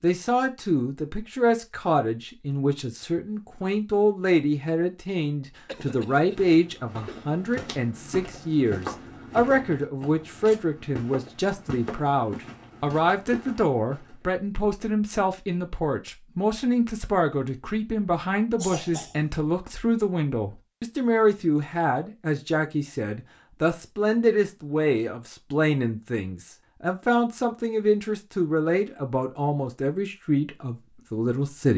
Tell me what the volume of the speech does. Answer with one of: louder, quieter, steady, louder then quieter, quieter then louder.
steady.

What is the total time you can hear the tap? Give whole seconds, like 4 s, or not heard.
not heard.